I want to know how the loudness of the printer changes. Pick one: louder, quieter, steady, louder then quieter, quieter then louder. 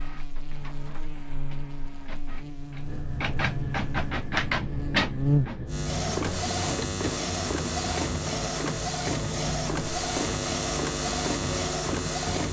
louder.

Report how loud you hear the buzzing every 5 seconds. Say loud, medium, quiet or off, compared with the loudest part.
medium, loud, loud.